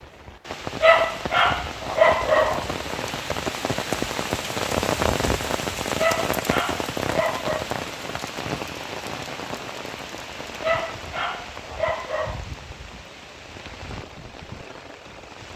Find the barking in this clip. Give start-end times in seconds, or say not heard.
0.8-2.6, 6.0-7.7, 10.6-12.4.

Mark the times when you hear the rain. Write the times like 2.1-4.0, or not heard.
0.0-15.5.